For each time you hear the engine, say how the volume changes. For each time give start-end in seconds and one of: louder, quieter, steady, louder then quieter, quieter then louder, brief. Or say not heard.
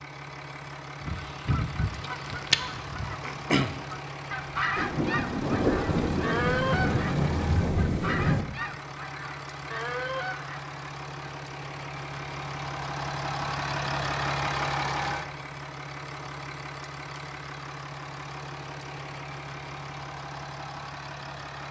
0.0-21.6 louder then quieter.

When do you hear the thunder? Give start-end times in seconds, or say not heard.
4.8-8.4.